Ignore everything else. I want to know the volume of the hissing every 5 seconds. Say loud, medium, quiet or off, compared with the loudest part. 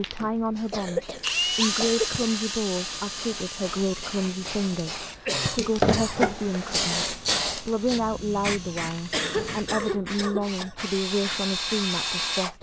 quiet, loud, quiet.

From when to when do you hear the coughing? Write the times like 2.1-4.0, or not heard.
0.7-2.2, 5.2-6.3, 9.1-10.8.